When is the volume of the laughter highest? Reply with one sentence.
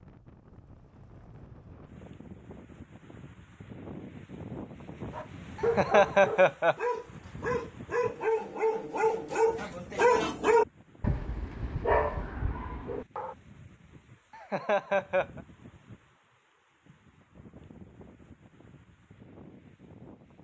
The volume of the laughter peaks at 6 seconds.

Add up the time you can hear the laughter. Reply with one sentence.
The laughter can be heard for 2 seconds in total.